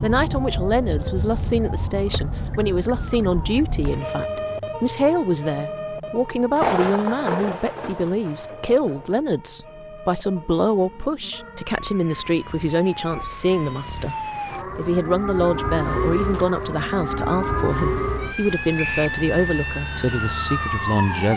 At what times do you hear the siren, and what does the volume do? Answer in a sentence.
The siren can be heard from 0.0 to 21.3 s, getting quieter then louder.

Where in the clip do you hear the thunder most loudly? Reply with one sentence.
The loudest moment of the thunder is at 7 seconds.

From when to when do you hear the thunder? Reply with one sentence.
You can hear the thunder from 6.5 to 9.1 s.